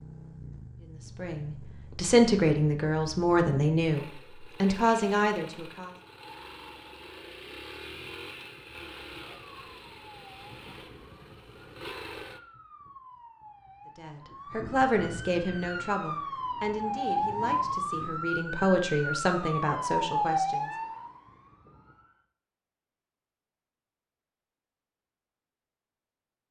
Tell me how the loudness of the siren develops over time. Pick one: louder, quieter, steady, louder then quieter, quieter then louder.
louder.